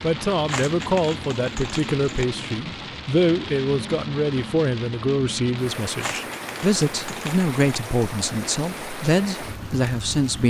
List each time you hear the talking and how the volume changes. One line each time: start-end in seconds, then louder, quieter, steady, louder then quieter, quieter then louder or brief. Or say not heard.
0.0-10.4 steady.